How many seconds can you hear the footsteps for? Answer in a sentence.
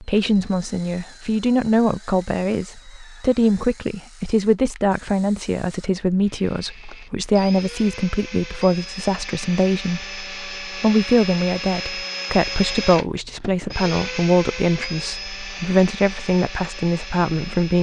The footsteps can't be heard in this clip.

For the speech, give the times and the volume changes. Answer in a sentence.
You can hear the speech from 0.0 to 17.7 s, at a steady volume.